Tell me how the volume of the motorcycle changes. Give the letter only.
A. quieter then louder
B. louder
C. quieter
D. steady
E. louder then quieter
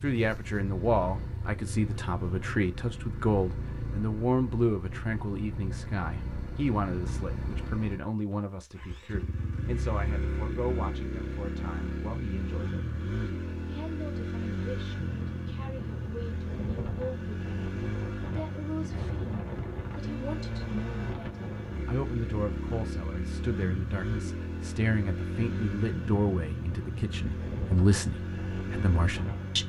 D.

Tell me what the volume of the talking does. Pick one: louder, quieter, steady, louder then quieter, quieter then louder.
quieter then louder.